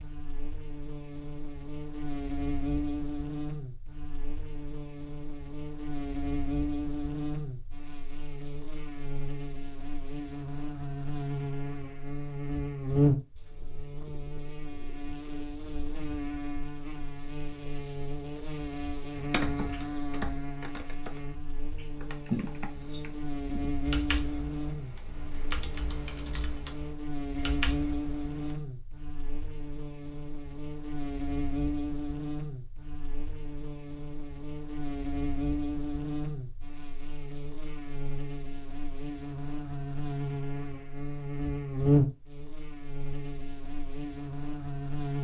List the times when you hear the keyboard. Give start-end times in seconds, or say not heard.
19.2-28.6.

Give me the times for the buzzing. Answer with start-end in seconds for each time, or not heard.
0.0-45.1.